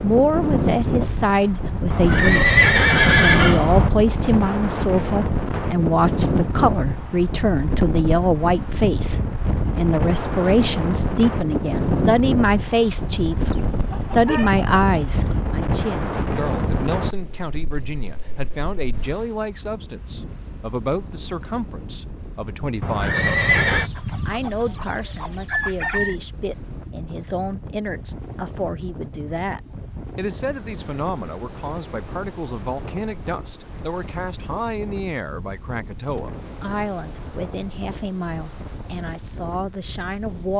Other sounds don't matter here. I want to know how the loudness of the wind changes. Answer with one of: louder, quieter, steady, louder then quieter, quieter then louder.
quieter.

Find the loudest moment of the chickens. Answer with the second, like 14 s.
26 s.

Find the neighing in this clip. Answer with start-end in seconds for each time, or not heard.
1.9-3.9, 22.8-23.9.